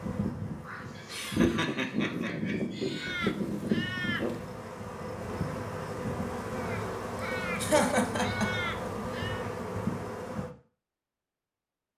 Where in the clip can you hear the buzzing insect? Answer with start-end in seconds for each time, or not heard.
0.0-10.5.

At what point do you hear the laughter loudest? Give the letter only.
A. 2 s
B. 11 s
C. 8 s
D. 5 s
C.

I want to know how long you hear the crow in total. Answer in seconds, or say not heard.
5 s.